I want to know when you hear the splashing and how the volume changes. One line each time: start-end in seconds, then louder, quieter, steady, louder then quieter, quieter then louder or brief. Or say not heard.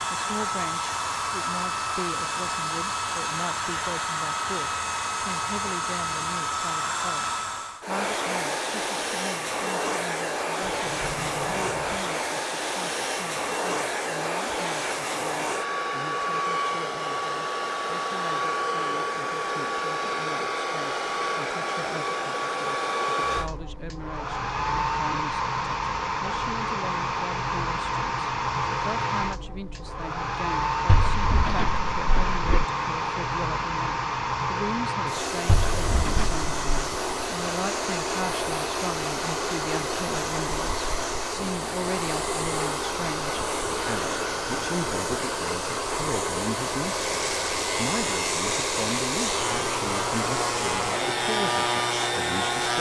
not heard.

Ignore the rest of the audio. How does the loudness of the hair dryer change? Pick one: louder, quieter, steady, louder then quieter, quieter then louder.
steady.